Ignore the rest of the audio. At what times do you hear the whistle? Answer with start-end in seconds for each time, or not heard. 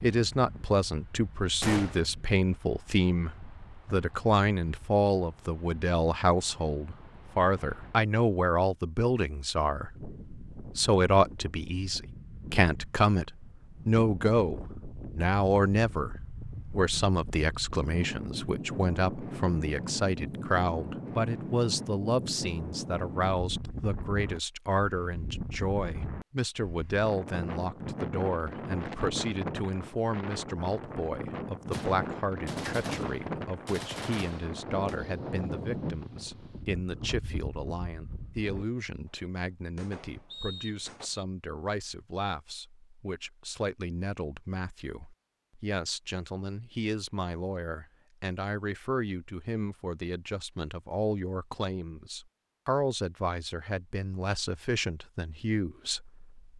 40.3-41.2.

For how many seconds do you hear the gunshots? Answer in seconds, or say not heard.
6 s.